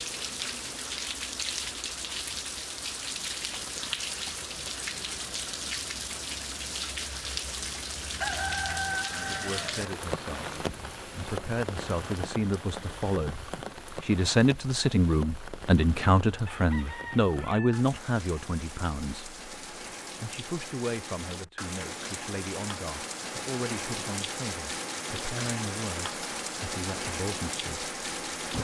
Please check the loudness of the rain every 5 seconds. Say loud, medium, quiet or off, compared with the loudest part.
loud, loud, loud, medium, loud, loud.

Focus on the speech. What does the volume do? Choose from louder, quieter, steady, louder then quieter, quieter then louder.
louder then quieter.